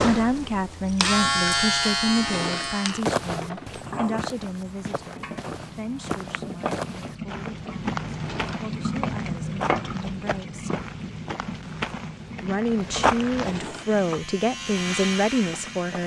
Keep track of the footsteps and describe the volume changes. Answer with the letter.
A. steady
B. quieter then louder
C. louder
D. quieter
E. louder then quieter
C.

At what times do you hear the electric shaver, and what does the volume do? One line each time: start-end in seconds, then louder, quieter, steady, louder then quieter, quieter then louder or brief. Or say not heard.
0.0-4.3 louder then quieter
13.6-16.0 brief.